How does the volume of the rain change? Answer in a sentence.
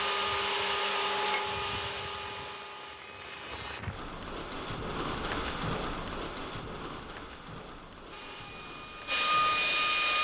The loudness of the rain goes up, then down.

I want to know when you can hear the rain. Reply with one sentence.
You can hear the rain from 0.0 to 10.1 s.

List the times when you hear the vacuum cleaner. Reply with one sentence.
You can hear the vacuum cleaner from 0.0 to 3.8 s and from 8.1 to 10.1 s.